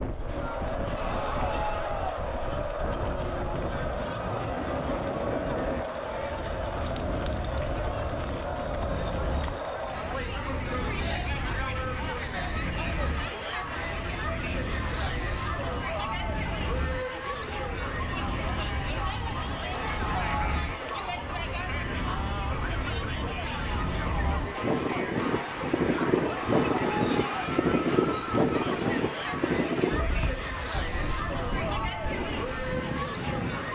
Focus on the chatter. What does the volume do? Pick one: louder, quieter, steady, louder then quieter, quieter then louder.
steady.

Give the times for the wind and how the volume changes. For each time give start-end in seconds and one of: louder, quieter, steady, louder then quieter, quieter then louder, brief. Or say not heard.
0.0-33.7 louder.